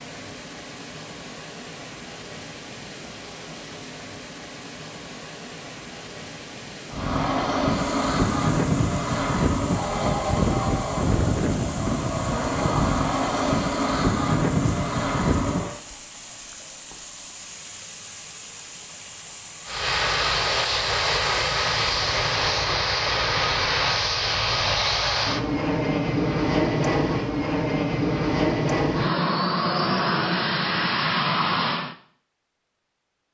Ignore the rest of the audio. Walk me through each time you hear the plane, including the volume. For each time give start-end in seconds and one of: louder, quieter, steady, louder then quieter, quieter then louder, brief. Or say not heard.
6.9-15.8 steady
19.6-31.9 steady.